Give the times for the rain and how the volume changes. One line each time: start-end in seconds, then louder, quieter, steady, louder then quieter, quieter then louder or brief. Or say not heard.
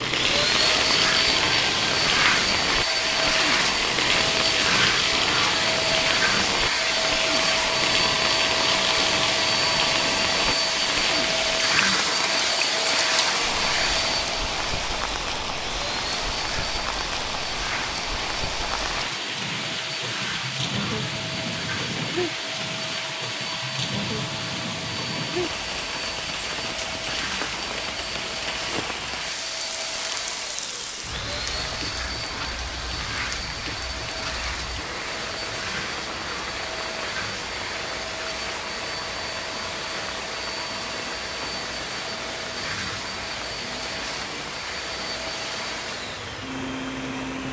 0.0-47.4 quieter.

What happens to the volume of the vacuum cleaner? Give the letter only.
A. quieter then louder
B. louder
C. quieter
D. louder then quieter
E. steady
C.